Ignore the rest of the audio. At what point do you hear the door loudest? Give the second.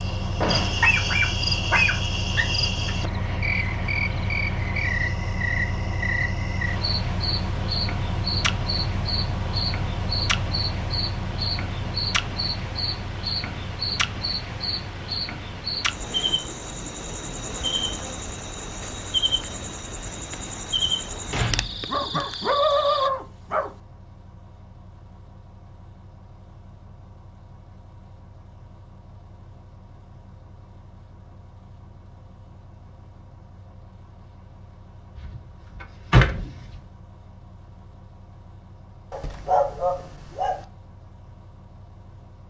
36 s.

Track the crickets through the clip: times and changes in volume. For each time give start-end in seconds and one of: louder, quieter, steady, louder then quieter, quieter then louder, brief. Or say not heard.
0.0-23.1 steady.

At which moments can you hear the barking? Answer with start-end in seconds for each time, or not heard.
0.8-3.0, 21.9-23.7, 39.1-40.6.